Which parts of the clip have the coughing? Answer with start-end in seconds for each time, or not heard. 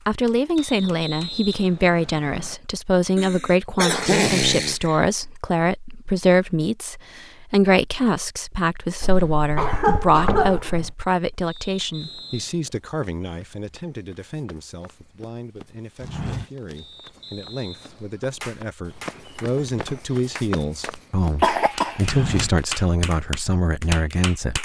3.1-5.0, 9.0-10.9, 21.4-22.3.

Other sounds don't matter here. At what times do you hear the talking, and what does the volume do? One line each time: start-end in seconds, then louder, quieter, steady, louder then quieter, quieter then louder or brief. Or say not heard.
0.1-24.5 quieter then louder.